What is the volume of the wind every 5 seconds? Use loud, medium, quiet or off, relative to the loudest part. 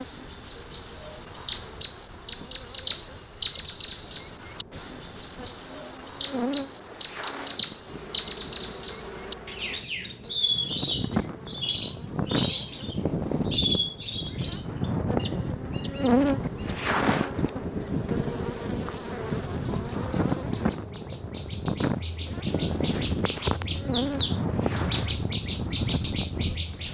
quiet, quiet, loud, loud, loud, loud.